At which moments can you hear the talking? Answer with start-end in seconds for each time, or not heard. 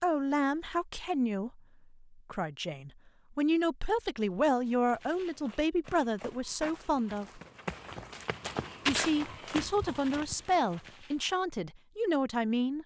0.0-7.4, 8.8-12.8.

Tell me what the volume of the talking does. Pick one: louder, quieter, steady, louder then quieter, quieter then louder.
steady.